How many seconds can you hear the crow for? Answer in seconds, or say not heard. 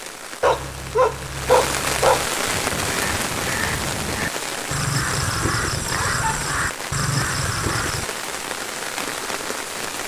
6 s.